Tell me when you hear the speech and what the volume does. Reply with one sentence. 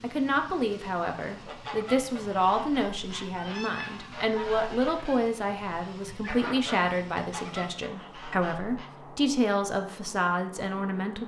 You can hear the speech from 0.0 to 11.2 s, at a steady volume.